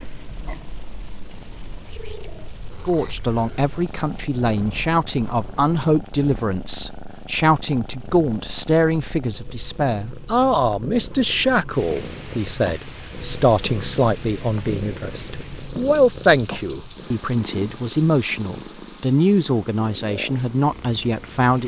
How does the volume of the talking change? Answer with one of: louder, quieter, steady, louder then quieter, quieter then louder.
steady.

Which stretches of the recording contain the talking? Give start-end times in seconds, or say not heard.
2.9-21.6.